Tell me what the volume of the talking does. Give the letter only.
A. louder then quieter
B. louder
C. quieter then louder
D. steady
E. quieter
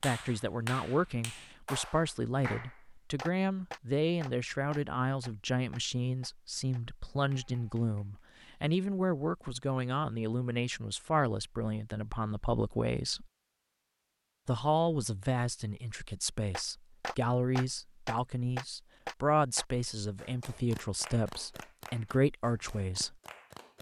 D.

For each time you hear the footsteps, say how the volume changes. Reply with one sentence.
You can't hear the footsteps here.